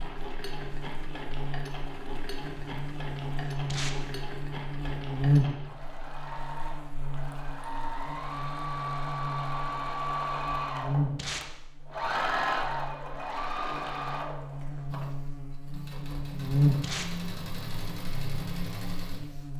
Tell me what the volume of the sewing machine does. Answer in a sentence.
The loudness of the sewing machine goes up, then down.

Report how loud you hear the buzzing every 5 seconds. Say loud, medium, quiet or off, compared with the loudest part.
medium, loud, medium, loud.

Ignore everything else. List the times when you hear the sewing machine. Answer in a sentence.
The sewing machine can be heard from 0.0 to 19.4 s.